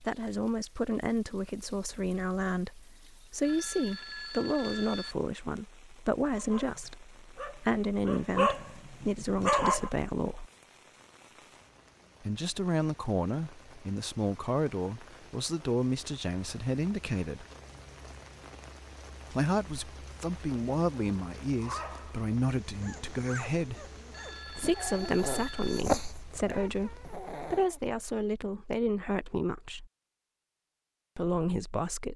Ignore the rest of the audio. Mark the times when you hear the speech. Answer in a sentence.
The speech can be heard from 0.0 to 10.5 s, from 12.2 to 17.4 s, from 19.3 to 23.9 s, from 24.5 to 29.9 s and from 31.1 to 32.1 s.